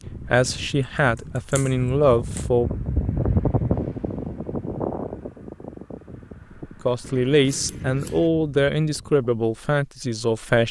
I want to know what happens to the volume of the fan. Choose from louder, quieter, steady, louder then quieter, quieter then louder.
louder then quieter.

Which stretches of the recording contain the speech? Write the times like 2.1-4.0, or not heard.
0.1-2.7, 6.8-10.6.